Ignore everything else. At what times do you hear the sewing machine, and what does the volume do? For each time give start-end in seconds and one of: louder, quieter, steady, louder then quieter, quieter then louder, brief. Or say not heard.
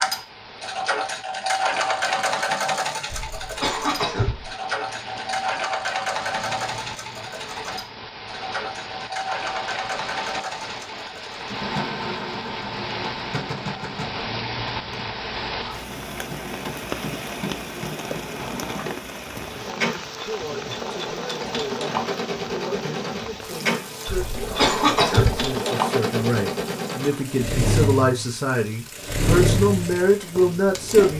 0.0-31.1 quieter then louder.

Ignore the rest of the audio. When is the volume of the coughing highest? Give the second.
25 s.